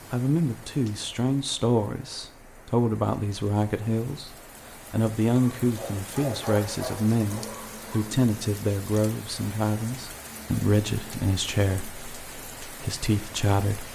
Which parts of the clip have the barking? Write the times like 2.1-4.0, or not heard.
5.6-8.1.